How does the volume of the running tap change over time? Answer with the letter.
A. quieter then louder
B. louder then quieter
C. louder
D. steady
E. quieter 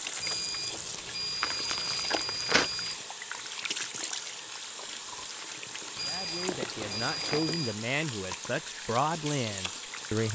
D.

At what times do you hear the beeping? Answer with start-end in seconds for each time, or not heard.
0.2-3.0, 6.0-7.8.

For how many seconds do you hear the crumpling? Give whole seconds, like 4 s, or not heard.
3 s.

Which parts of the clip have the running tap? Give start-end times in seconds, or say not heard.
0.0-10.2.